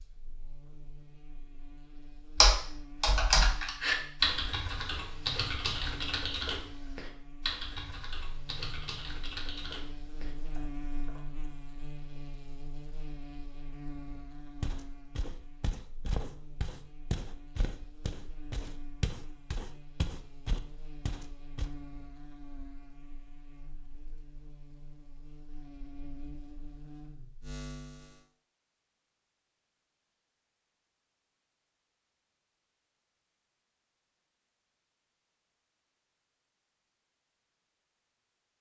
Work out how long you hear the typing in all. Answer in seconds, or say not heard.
9 s.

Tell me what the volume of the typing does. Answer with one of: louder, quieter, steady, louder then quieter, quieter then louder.
quieter.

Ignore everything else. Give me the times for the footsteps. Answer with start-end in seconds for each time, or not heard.
14.6-21.7.